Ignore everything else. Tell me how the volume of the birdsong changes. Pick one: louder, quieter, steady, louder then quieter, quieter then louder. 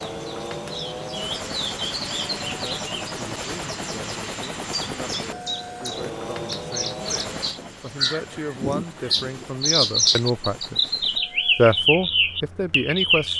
quieter then louder.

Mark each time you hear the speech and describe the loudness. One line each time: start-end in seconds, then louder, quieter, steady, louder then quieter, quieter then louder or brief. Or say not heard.
2.5-10.8 louder
11.6-13.3 brief.